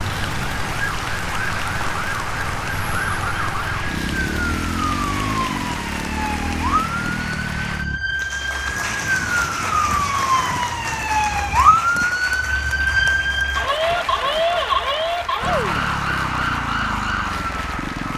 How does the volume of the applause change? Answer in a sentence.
The loudness of the applause stays about the same.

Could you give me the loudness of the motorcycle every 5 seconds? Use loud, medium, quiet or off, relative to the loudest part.
loud, loud, off, loud.